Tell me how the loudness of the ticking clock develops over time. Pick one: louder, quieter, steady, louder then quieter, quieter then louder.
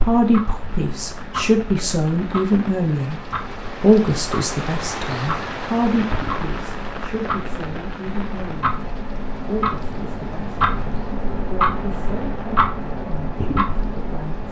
louder.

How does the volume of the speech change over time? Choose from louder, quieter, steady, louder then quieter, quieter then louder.
quieter.